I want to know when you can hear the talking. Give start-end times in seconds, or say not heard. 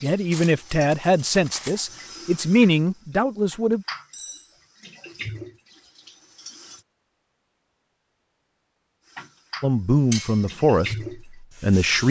0.0-3.9, 9.6-12.0.